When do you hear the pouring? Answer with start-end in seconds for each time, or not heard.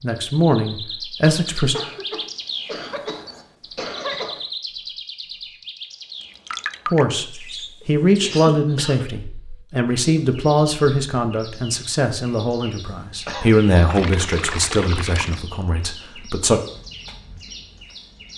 6.2-7.2, 13.8-15.4.